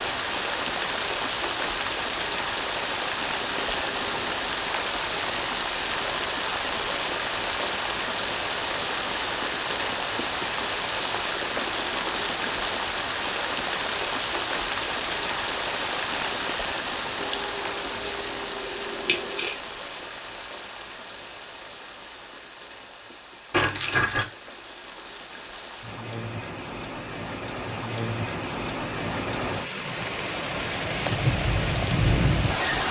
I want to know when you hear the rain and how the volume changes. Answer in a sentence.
You can hear the rain from 0.0 to 32.8 s, getting quieter then louder.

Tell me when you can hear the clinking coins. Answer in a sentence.
You can hear the clinking coins from 3.5 to 4.3 s, from 17.2 to 19.6 s and from 23.5 to 24.3 s.